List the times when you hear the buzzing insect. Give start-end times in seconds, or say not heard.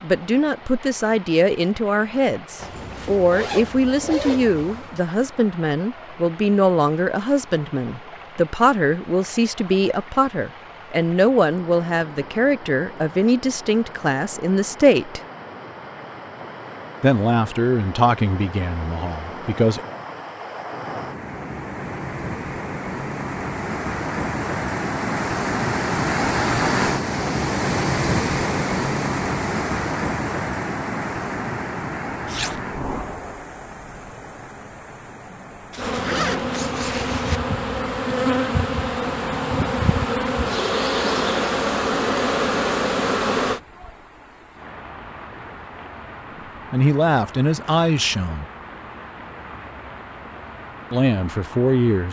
35.8-43.6.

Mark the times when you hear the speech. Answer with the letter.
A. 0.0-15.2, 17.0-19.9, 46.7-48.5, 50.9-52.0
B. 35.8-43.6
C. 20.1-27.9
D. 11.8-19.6
A.